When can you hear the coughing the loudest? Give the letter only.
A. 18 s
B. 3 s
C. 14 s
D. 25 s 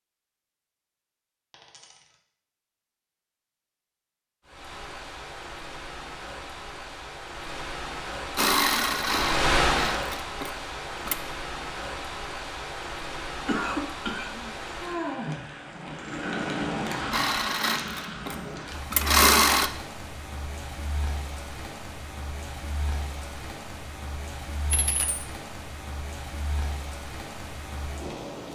C.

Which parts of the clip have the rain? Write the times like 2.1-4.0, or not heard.
4.5-28.5.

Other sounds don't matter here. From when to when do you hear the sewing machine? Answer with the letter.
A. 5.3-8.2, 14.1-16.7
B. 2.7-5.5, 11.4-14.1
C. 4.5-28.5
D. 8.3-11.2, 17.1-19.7
D.